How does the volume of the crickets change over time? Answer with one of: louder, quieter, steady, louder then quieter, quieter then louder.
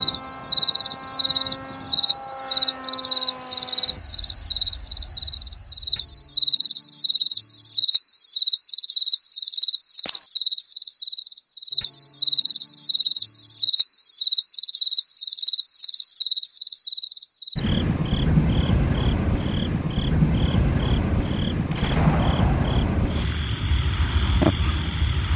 steady.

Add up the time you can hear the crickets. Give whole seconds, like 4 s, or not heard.
25 s.